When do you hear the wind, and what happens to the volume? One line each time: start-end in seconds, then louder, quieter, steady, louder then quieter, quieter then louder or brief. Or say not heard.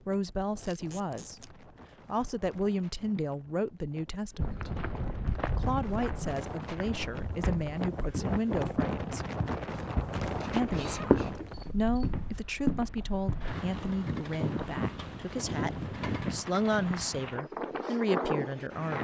0.0-18.9 louder.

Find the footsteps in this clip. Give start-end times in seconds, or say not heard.
4.3-13.5.